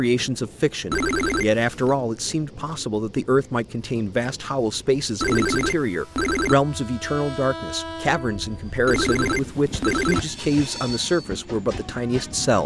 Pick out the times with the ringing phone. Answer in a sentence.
You can hear the ringing phone from 0.9 to 1.9 s, from 5.2 to 6.5 s and from 8.8 to 10.2 s.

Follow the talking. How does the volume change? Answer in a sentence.
The loudness of the talking stays about the same.